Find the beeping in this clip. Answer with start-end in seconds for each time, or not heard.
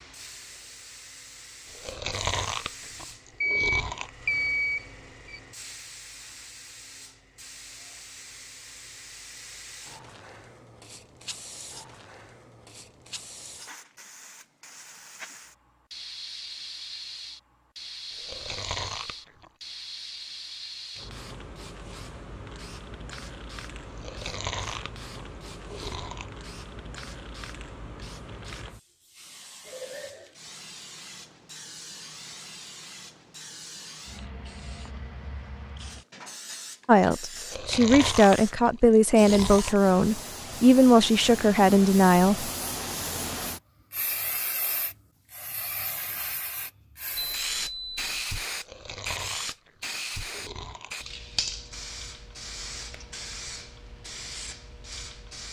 3.4-5.4, 47.1-48.1.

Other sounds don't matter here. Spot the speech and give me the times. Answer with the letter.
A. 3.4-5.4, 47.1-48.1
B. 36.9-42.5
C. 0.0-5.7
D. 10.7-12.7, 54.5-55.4
B.